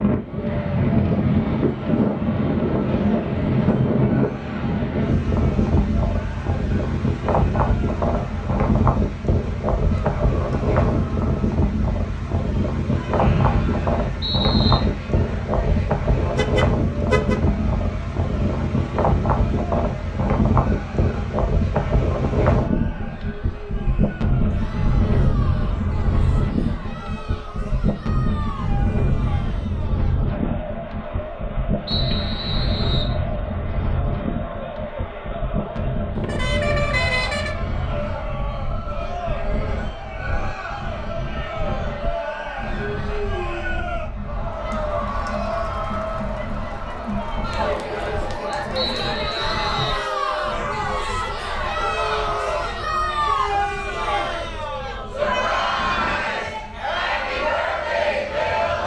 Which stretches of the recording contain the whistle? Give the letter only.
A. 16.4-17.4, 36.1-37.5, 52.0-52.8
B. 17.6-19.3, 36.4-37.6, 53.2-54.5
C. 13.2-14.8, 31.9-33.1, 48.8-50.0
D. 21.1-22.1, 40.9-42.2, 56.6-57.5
C.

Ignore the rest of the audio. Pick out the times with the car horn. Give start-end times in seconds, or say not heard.
16.4-17.4, 36.1-37.5, 52.0-52.8.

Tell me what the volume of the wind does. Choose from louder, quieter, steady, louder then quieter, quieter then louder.
quieter.